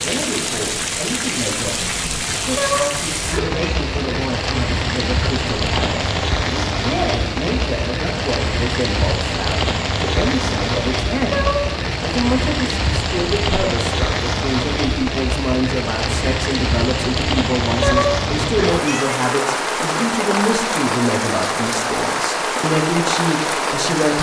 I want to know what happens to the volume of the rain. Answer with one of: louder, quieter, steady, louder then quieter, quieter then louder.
steady.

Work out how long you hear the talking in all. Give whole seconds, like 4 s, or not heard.
24 s.